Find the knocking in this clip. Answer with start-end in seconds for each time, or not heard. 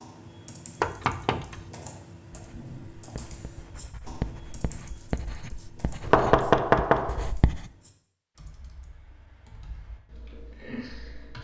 0.8-1.6, 6.0-7.3.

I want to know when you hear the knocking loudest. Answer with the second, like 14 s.
7 s.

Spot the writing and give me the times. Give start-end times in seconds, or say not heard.
2.3-7.7.